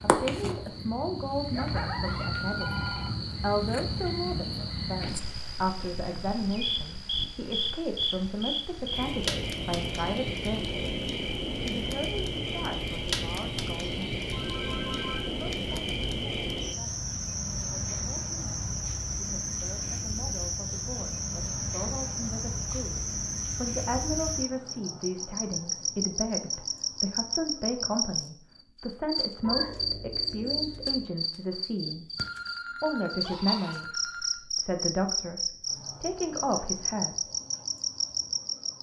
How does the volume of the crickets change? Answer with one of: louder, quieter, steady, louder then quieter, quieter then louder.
steady.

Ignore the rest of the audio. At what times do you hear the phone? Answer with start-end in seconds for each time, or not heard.
2.5-3.1, 14.3-15.8, 32.1-34.5.